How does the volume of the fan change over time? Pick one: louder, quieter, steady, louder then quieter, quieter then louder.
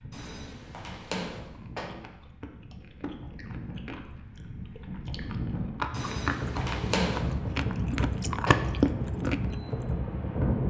louder.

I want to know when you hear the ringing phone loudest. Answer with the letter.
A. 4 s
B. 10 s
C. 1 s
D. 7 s
D.